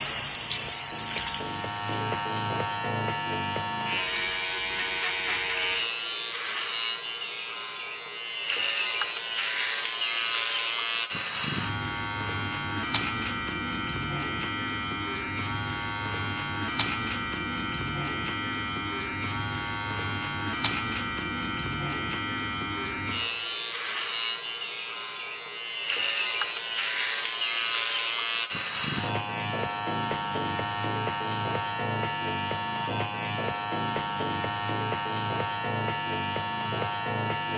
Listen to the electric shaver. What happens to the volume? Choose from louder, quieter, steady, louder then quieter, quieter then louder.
steady.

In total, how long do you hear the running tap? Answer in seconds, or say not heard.
2 s.